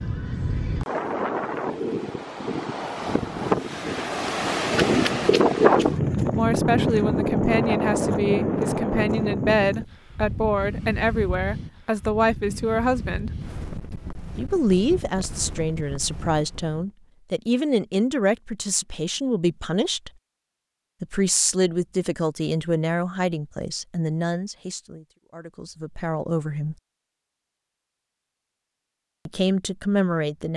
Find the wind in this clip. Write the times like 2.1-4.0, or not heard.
0.0-16.9.